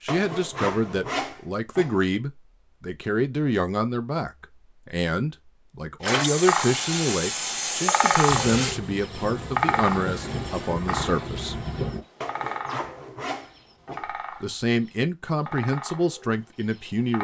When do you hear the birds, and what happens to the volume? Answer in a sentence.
You can hear the birds from 6.0 to 17.1 s, getting quieter.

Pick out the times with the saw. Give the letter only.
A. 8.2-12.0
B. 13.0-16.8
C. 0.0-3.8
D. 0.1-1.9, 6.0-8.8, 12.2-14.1
D.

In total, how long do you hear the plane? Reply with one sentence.
The plane can be heard for 4 seconds in total.